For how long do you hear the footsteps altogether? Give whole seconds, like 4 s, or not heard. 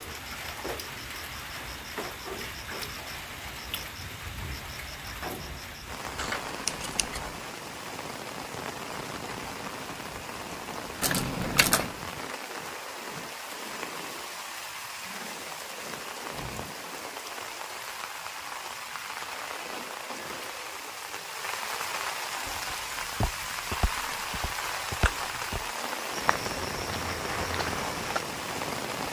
6 s.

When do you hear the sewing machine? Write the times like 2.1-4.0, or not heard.
not heard.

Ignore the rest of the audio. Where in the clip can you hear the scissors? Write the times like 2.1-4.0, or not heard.
6.2-7.3, 11.0-11.9, 24.9-25.5.